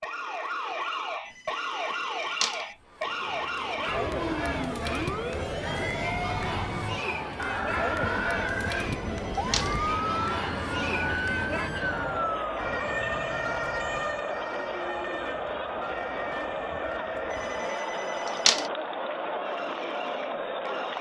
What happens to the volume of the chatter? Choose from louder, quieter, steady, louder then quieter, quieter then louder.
steady.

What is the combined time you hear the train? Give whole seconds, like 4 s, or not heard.
5 s.